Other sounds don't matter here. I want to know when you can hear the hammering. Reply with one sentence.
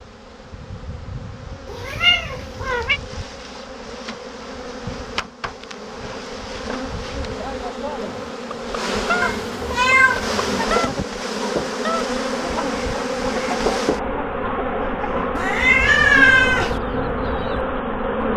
You can't hear the hammering here.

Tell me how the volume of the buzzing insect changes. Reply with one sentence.
The loudness of the buzzing insect goes up.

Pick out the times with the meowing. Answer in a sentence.
You can hear the meowing from 1.6 to 3.0 s, from 9.2 to 10.7 s and from 15.3 to 16.8 s.